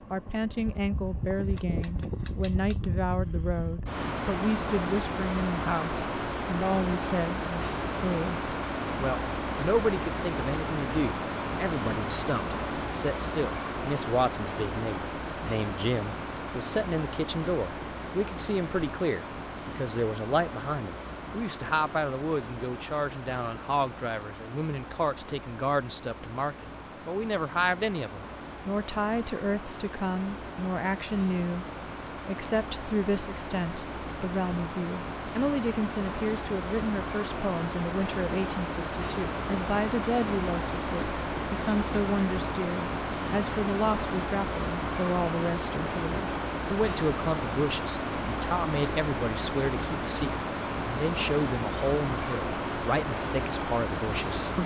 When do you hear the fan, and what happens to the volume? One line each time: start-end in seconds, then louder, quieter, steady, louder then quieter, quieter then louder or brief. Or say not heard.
0.0-54.6 quieter then louder.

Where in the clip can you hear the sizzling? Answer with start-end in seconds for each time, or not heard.
not heard.